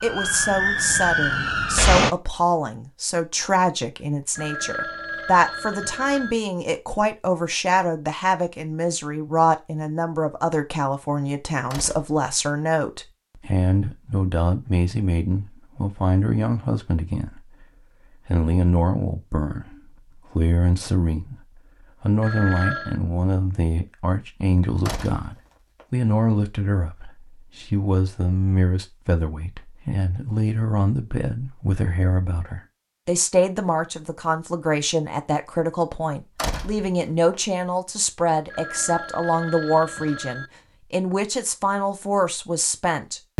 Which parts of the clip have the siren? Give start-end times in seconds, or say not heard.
0.0-2.1.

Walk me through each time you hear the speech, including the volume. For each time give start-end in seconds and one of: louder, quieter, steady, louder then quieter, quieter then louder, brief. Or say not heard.
0.0-43.3 steady.